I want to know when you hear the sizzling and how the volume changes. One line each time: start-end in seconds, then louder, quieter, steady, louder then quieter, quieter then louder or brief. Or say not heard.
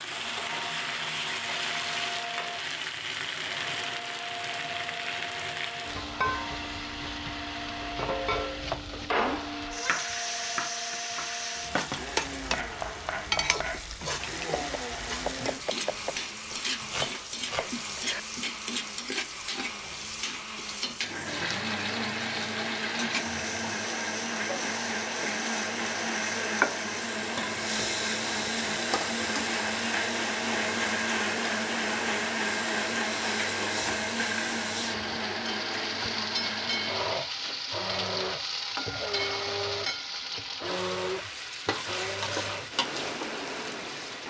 0.0-44.2 steady.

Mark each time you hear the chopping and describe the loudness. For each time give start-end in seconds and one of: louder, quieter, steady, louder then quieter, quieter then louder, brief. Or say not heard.
7.8-18.2 steady.